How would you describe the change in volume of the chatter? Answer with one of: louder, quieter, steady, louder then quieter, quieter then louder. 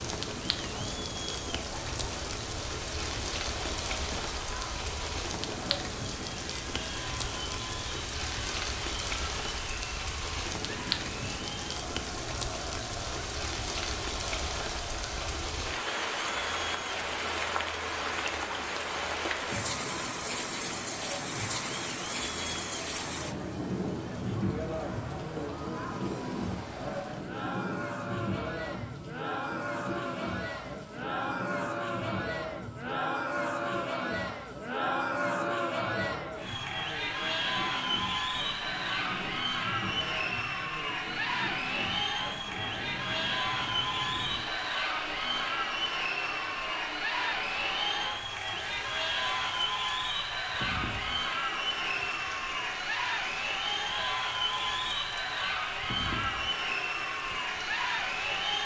louder.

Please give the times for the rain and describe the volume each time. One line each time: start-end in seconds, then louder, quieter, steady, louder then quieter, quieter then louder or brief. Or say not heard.
0.0-58.6 quieter.